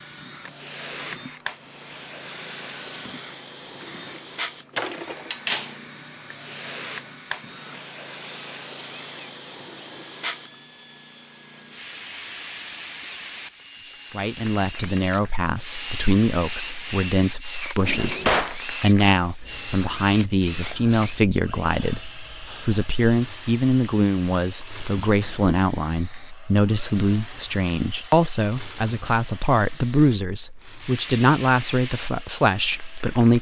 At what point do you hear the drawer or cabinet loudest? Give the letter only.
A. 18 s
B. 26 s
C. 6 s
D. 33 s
A.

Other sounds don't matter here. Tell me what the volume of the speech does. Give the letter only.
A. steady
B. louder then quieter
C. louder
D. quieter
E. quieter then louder
A.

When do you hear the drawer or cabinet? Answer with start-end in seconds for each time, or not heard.
4.8-5.7, 17.8-18.6, 25.1-25.5.